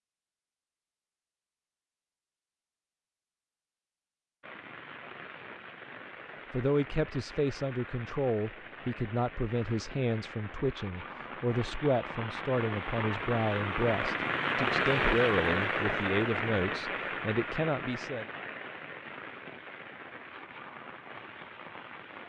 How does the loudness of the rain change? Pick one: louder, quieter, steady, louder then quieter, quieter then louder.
louder then quieter.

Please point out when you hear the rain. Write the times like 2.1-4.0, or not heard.
4.4-22.2.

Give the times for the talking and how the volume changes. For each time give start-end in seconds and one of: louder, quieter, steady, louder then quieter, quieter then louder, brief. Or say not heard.
6.5-18.2 steady.